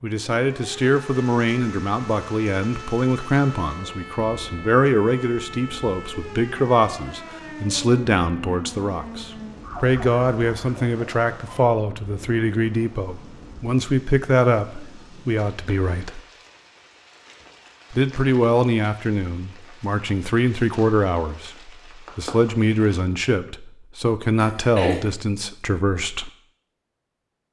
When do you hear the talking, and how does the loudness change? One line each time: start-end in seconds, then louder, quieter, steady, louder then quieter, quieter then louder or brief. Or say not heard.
0.0-16.2 steady
17.9-26.3 steady.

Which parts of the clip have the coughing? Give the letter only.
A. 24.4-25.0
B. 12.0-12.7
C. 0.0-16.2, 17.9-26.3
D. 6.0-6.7
A.